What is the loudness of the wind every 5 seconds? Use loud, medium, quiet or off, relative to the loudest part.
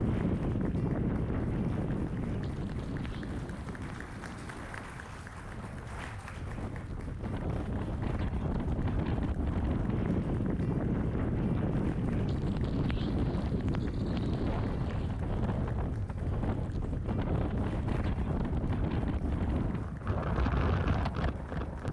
loud, medium, loud, loud, loud.